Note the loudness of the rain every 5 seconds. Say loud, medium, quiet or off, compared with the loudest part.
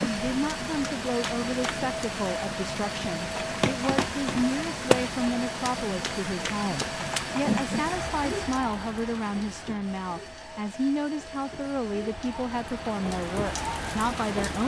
loud, loud, medium.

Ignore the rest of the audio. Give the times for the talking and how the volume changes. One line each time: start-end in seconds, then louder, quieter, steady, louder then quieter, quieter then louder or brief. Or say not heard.
0.0-14.6 steady.